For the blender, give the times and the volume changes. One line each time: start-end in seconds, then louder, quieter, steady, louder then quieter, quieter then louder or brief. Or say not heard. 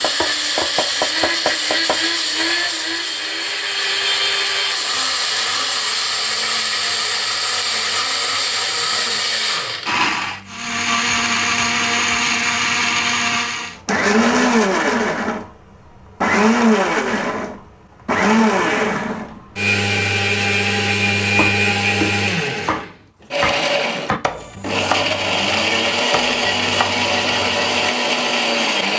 0.0-28.9 steady.